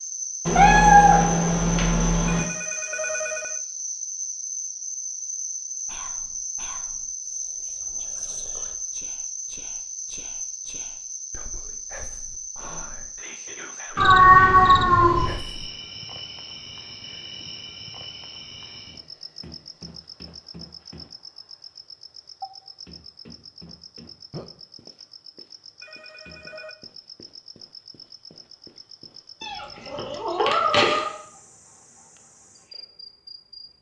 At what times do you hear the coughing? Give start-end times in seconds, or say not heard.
not heard.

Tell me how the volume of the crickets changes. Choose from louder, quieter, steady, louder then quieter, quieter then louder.
quieter.